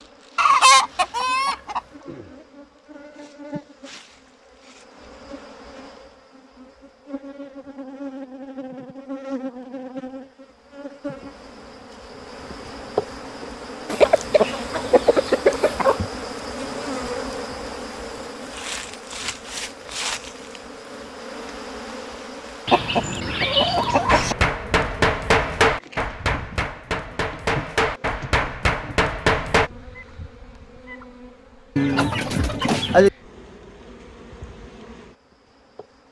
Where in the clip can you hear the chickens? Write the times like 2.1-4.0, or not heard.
0.3-1.8, 13.8-16.0, 22.6-24.4, 31.8-33.1.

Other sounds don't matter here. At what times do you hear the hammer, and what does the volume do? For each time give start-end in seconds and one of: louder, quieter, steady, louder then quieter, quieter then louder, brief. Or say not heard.
24.1-29.7 quieter then louder.